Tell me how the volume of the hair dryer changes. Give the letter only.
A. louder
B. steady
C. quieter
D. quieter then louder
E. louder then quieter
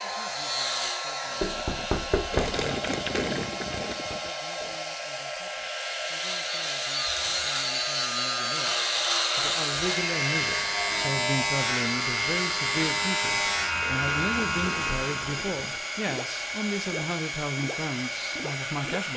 B.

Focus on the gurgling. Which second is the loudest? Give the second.
3 s.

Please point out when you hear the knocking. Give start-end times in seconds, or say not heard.
1.4-2.6.